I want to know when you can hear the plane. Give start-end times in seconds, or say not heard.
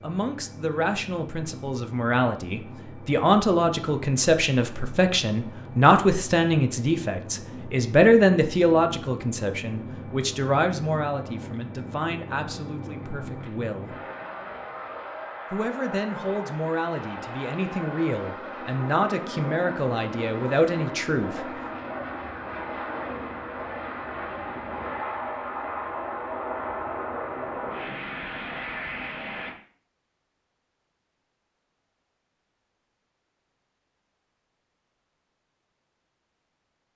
0.0-29.6.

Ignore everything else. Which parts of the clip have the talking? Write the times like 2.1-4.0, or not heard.
0.0-13.9, 15.5-21.4.